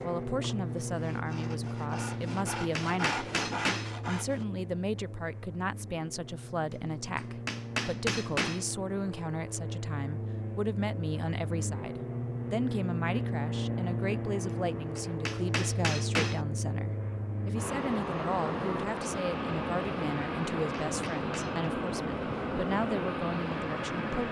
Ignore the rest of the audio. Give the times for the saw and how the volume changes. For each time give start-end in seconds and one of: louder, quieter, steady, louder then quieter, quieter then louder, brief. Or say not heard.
0.0-4.5 louder.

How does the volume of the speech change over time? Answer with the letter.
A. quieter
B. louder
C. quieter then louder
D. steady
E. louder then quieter
D.